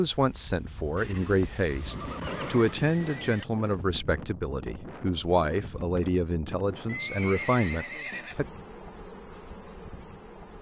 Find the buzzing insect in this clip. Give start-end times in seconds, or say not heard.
8.3-10.5.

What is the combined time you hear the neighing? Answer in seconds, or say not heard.
4 s.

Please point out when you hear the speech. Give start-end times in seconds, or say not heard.
0.0-8.4.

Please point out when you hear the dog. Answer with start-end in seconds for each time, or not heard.
not heard.